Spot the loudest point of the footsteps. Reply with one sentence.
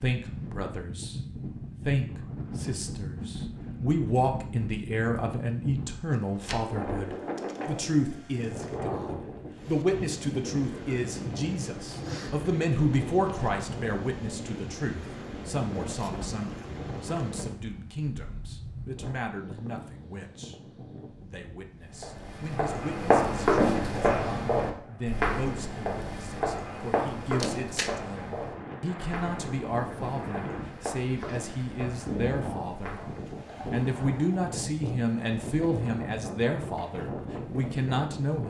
The volume of the footsteps peaks at 24 seconds.